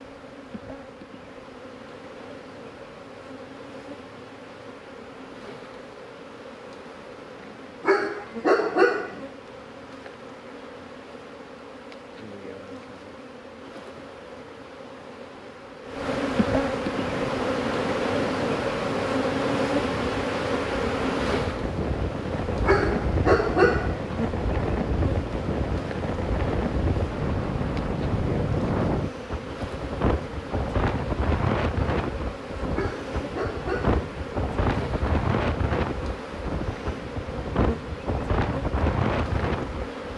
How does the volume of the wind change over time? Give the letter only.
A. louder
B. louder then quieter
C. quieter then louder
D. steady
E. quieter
A.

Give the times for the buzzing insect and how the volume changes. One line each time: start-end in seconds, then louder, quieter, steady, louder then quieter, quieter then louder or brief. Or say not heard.
0.0-40.1 louder then quieter.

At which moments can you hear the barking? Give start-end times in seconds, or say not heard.
7.8-9.2, 22.6-24.0, 32.8-34.0.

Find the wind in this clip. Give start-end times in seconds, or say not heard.
16.9-40.1.